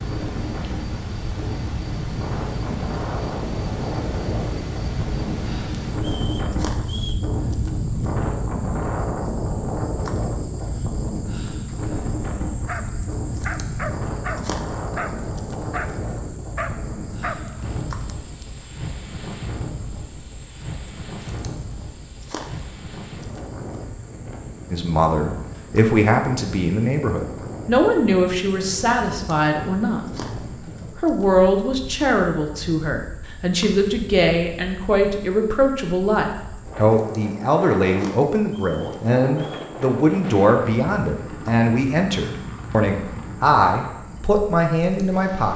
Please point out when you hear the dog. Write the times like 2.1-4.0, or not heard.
12.6-18.4.